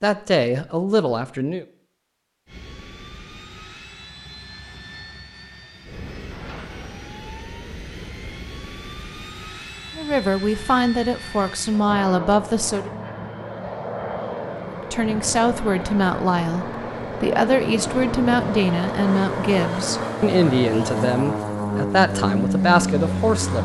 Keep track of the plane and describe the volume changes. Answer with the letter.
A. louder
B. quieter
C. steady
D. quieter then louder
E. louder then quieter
A.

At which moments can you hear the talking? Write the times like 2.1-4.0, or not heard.
0.0-1.6, 9.9-12.9, 14.9-23.5.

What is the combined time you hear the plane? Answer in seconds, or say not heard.
21 s.